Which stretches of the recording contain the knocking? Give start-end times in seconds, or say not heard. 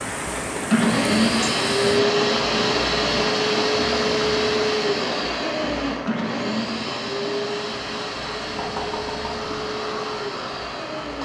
8.6-9.6.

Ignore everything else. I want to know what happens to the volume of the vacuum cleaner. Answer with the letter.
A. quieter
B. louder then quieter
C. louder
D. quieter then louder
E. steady
A.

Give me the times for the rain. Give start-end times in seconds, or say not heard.
0.0-11.1.